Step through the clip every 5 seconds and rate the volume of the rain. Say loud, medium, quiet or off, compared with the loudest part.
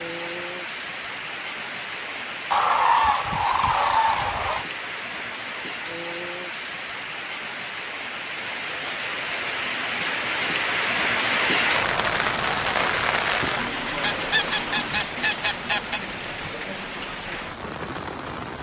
medium, medium, loud, medium.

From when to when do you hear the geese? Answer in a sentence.
The geese can be heard from 2.5 to 4.7 s and from 14.0 to 16.0 s.